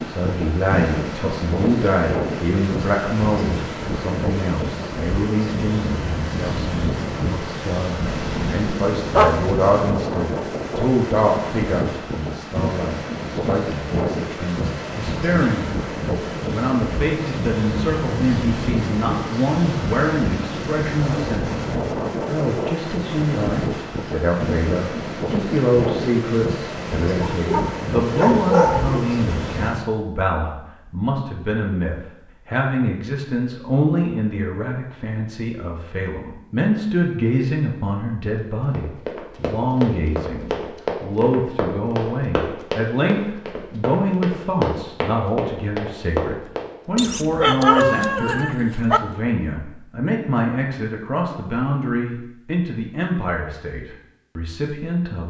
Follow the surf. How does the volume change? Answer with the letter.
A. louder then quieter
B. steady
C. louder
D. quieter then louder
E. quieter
B.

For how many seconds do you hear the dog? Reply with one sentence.
You can hear the dog for 5 seconds altogether.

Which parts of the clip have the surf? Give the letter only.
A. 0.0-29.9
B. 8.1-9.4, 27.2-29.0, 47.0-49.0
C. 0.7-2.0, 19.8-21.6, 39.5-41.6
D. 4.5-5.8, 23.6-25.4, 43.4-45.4
A.